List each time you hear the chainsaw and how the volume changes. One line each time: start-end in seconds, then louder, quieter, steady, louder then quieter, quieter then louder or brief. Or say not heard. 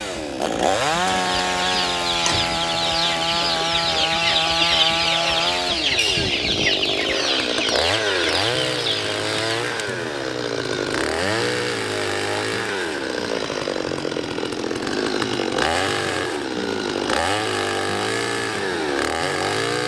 0.0-19.8 steady.